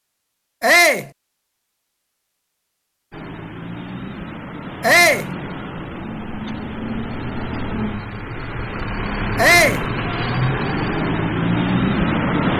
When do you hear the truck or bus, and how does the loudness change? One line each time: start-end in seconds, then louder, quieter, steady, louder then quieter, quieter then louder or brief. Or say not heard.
3.1-12.5 louder.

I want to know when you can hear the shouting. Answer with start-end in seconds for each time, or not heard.
0.6-1.1, 4.8-5.3, 9.3-9.8.